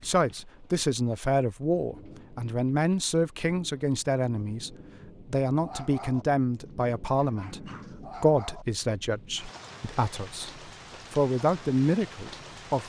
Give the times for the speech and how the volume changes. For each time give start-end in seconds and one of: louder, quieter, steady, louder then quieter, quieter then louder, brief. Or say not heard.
0.0-12.8 steady.